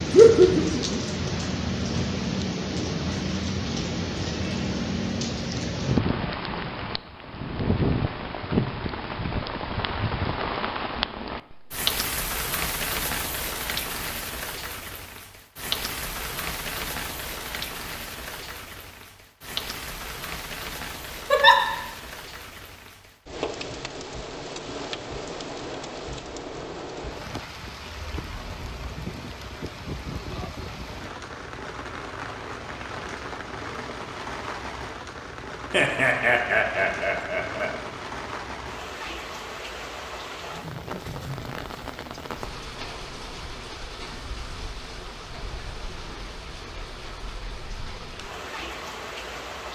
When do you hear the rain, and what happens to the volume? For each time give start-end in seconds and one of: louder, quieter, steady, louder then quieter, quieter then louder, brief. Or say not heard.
0.0-49.7 quieter.